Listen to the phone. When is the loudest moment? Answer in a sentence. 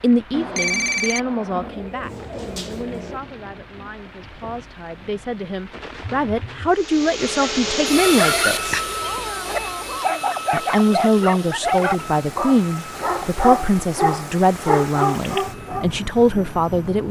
The volume of the phone peaks at 1 second.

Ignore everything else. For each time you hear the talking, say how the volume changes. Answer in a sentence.
You can hear the talking from 0.0 to 8.8 s, getting quieter then louder; and from 10.5 to 17.0 s, at a steady volume.